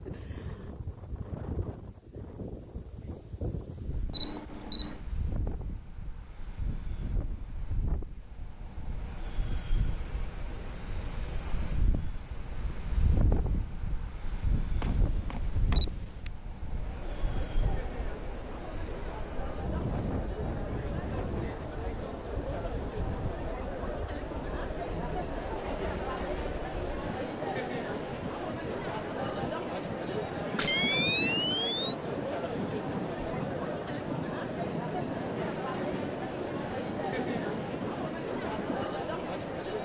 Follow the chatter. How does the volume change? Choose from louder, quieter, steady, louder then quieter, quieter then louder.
louder.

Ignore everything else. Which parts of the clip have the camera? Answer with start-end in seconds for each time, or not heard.
4.1-5.0, 14.8-16.3, 30.6-32.5.